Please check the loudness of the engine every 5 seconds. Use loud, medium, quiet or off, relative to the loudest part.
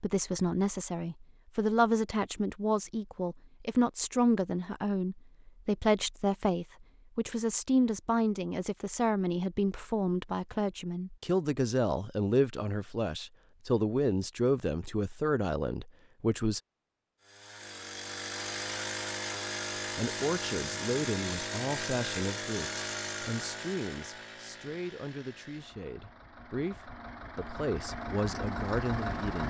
off, off, off, loud, loud, loud.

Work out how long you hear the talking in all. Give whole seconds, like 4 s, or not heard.
26 s.